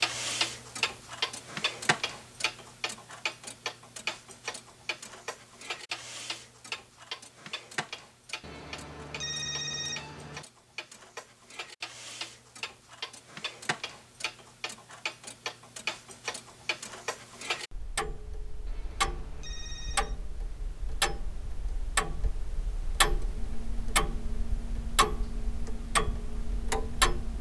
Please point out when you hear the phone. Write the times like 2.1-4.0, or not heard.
8.4-10.4, 18.6-20.1.